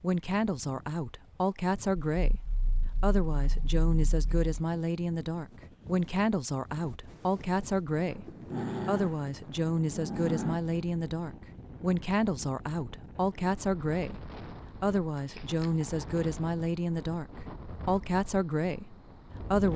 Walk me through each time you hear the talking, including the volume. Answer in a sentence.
You can hear the talking from 0.0 to 19.7 s, at a steady volume.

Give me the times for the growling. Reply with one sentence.
You can hear the growling from 2.1 to 4.5 s, from 8.2 to 10.6 s and from 15.2 to 16.2 s.